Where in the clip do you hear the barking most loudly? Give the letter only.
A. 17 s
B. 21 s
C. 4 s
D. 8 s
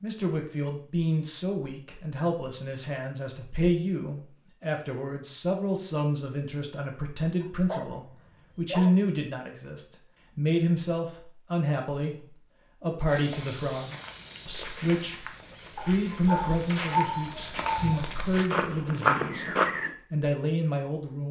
A.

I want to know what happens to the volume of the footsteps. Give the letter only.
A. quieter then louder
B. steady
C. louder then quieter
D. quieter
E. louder
E.